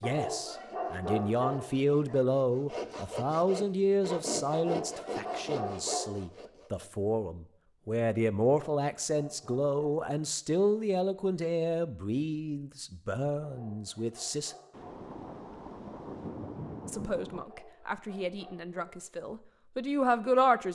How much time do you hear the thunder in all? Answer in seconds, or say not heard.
3 s.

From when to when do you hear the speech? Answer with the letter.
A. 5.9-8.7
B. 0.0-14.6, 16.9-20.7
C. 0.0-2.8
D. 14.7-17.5
B.